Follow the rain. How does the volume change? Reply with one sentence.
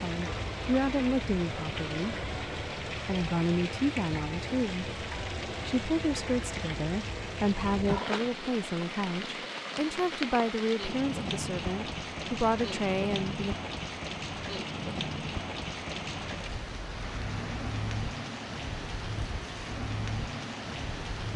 The loudness of the rain stays about the same.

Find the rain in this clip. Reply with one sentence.
The rain can be heard from 0.0 to 21.3 s.